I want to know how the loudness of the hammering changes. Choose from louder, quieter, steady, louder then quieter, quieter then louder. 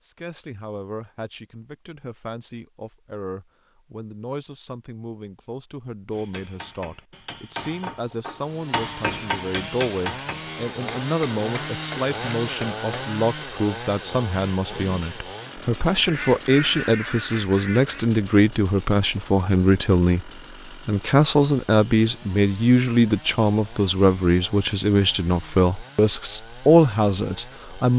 louder then quieter.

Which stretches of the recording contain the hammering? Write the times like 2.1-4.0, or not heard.
6.1-13.2.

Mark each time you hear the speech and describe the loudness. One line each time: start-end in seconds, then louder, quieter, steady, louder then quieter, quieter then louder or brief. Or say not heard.
0.0-27.9 louder.